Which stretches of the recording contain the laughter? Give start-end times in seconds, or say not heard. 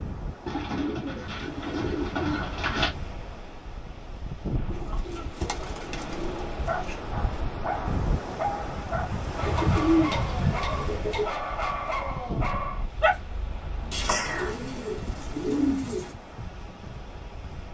not heard.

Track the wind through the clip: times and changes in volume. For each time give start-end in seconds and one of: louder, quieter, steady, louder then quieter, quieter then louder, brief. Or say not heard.
0.0-17.7 louder then quieter.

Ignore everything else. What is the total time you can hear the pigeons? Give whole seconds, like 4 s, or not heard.
9 s.